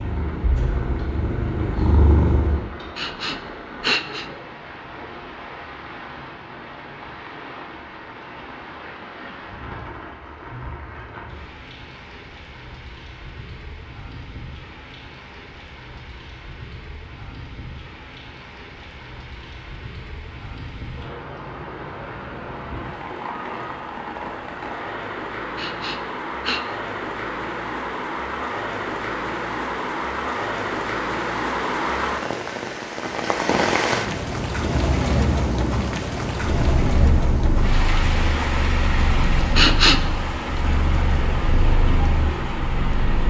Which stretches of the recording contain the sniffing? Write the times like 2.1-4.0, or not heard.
3.0-4.2, 25.6-26.6, 39.5-40.1.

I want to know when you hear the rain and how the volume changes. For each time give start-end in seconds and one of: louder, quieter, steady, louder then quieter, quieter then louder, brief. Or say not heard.
0.0-43.2 louder.